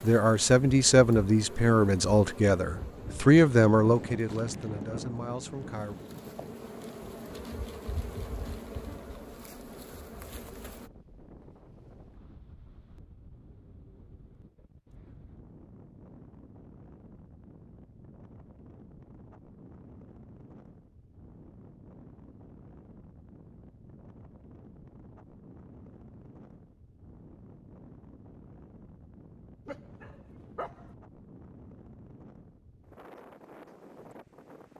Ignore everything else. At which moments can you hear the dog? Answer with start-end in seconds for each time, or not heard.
29.6-30.9.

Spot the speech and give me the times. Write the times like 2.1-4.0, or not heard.
0.0-6.0.